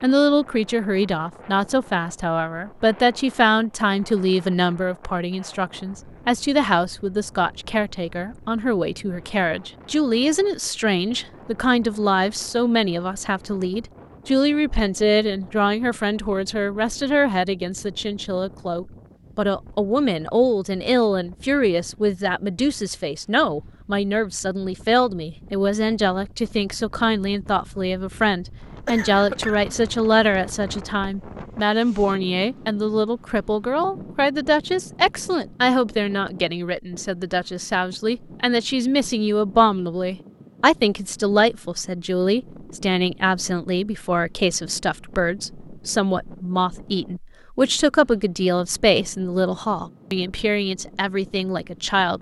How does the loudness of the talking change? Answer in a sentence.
The loudness of the talking stays about the same.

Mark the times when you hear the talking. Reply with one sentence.
The talking can be heard from 0.0 to 52.1 s.